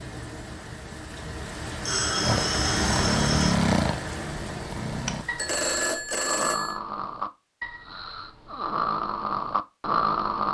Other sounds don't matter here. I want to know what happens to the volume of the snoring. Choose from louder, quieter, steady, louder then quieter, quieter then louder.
quieter then louder.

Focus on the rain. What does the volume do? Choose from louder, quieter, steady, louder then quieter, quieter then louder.
louder then quieter.